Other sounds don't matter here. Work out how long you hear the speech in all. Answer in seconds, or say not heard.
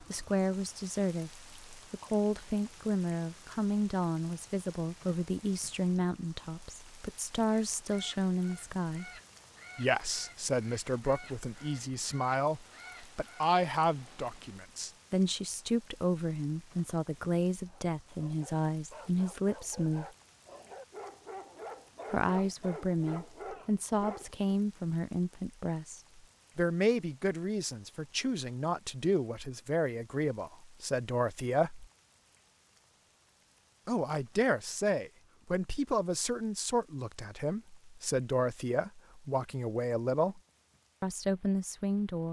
37 s.